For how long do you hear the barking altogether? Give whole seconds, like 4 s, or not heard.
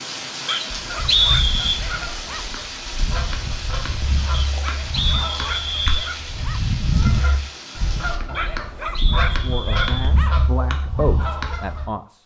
6 s.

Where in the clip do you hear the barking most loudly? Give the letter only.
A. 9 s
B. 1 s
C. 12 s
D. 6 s
A.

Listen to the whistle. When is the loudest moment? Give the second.
1 s.